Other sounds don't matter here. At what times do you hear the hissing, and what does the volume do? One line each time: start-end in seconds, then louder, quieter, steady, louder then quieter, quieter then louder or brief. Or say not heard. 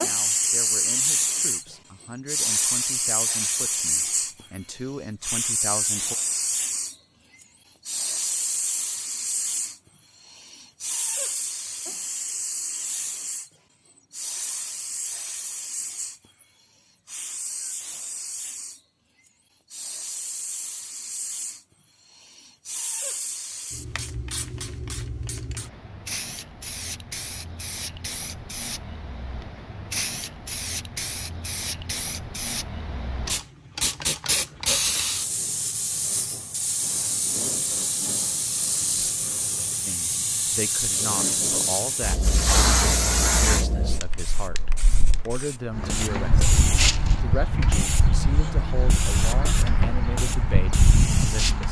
0.0-51.6 quieter then louder.